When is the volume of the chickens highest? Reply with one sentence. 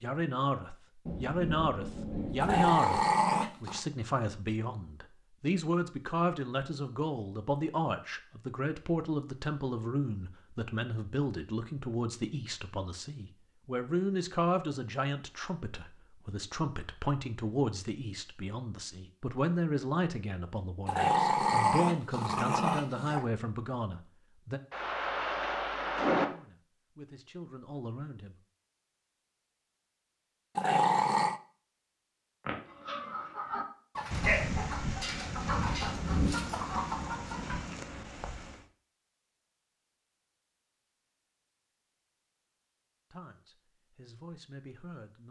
The volume of the chickens peaks at 34 seconds.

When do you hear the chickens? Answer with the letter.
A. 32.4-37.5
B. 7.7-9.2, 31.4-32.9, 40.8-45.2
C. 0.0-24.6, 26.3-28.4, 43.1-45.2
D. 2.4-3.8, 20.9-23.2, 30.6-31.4
A.